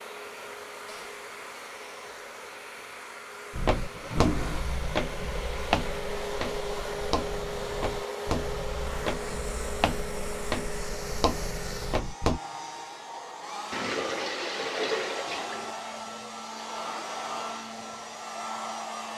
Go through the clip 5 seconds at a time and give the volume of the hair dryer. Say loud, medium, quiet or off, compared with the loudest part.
medium, loud, loud, loud.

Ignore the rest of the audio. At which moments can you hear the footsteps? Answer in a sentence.
The footsteps can be heard from 3.5 to 12.4 s.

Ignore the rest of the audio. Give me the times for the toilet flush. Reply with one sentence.
The toilet flush can be heard from 3.8 to 4.6 s and from 13.7 to 15.8 s.